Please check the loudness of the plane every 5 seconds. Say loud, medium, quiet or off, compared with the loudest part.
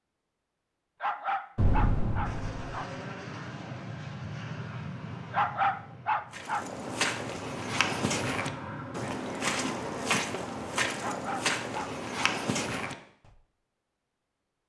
loud, loud, off.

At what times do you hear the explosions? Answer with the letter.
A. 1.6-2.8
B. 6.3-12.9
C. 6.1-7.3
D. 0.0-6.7
A.